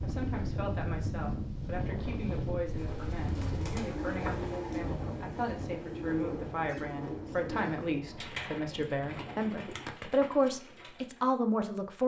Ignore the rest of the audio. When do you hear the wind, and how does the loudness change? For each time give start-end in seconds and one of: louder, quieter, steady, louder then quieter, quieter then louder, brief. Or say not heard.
0.0-9.6 quieter.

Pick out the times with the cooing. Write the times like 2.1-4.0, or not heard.
2.6-11.3.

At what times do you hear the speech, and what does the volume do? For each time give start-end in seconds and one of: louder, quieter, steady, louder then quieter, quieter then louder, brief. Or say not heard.
0.0-12.0 louder.